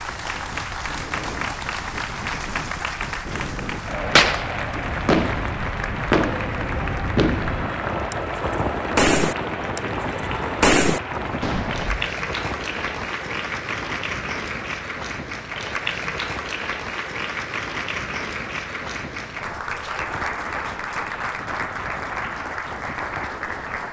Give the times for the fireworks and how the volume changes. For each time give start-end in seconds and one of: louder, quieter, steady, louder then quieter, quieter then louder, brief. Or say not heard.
4.2-12.0 quieter then louder.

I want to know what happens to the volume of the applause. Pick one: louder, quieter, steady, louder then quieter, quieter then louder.
steady.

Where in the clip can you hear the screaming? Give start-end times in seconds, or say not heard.
not heard.